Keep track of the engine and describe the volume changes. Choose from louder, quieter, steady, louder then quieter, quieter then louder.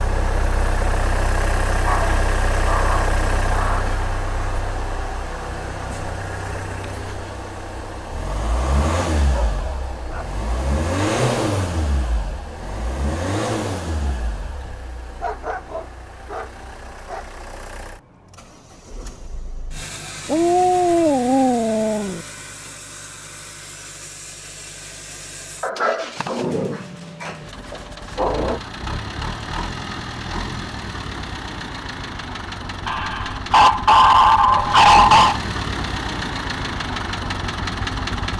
quieter then louder.